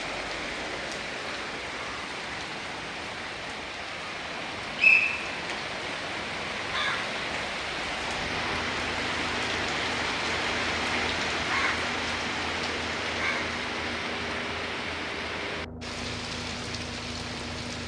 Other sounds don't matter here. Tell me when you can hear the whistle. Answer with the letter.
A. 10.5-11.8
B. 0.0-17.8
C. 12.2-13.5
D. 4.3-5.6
D.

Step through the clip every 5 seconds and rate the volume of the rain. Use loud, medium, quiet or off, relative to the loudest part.
medium, loud, loud, medium.